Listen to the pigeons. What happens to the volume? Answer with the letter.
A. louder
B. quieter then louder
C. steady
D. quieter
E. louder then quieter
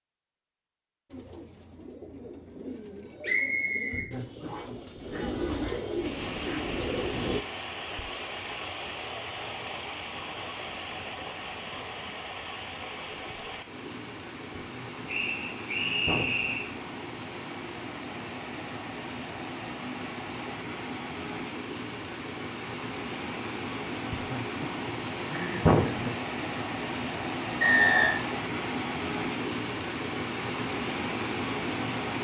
A.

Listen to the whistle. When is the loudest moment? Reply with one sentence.
The loudest moment of the whistle is at 28 seconds.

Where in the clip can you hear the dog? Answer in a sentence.
You can't hear the dog here.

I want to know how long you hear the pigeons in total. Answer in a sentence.
The pigeons can be heard for 6 seconds in total.